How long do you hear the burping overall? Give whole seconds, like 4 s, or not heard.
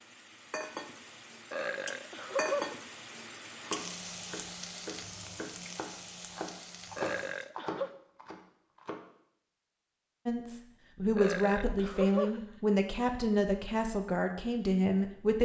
4 s.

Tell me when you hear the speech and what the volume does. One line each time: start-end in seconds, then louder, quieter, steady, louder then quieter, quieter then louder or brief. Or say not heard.
10.2-15.4 steady.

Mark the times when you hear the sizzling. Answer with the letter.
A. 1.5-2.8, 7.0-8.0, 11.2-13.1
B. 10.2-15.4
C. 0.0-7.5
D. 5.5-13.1
C.